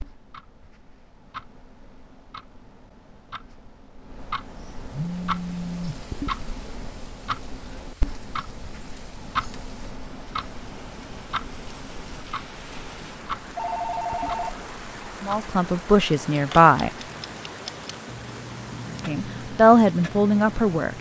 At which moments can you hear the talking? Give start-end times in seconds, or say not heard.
15.2-16.9, 19.1-20.9.